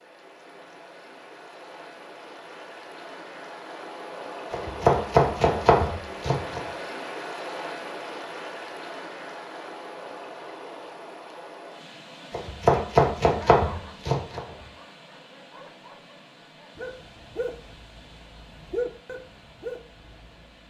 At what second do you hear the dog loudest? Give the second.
19 s.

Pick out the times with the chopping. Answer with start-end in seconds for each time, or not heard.
4.5-6.6, 12.3-14.7.